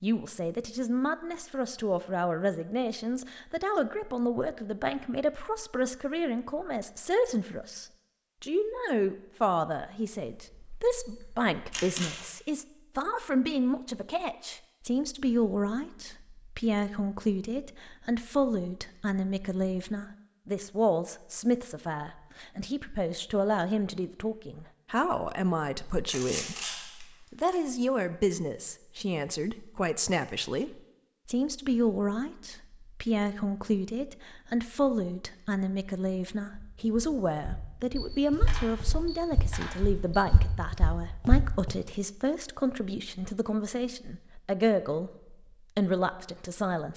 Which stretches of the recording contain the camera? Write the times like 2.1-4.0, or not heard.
10.2-12.2, 26.1-27.6, 38.0-40.3.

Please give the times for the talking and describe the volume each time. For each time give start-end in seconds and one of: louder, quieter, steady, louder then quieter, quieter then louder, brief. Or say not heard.
0.0-46.9 steady.